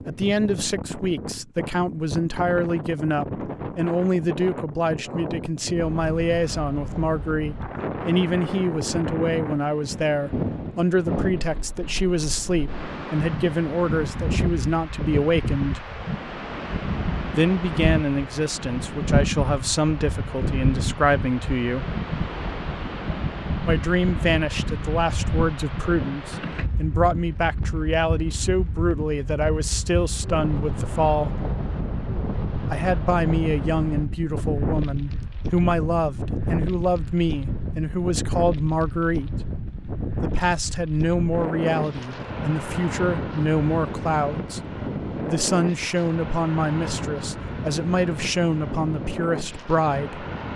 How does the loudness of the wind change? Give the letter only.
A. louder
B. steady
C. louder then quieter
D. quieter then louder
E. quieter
B.